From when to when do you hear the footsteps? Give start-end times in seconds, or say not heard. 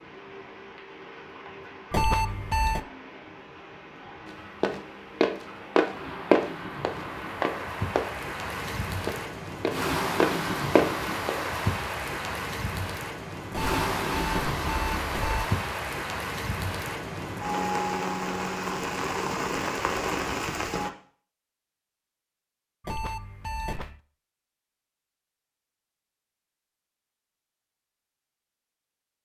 4.6-8.2, 9.1-11.3.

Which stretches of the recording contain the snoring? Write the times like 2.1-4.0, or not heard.
not heard.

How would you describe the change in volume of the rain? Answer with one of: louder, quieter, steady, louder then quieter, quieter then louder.
louder.